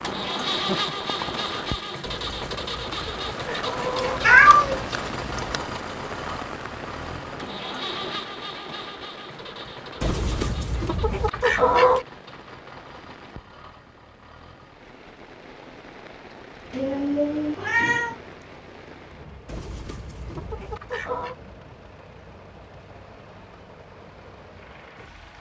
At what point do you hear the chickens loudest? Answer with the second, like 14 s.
12 s.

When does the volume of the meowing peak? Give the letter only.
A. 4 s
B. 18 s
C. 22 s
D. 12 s
A.